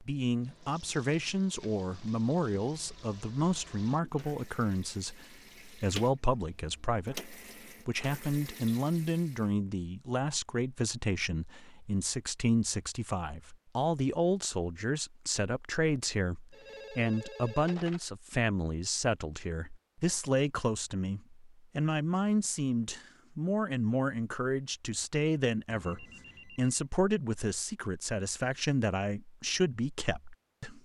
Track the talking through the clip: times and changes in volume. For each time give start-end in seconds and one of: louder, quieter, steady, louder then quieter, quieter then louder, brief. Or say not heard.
0.0-30.8 steady.